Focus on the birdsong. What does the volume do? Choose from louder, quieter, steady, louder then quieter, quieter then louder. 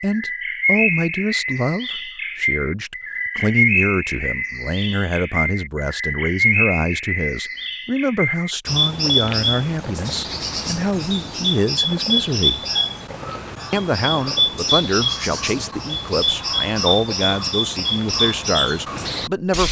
steady.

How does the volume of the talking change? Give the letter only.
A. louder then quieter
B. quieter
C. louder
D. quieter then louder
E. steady
E.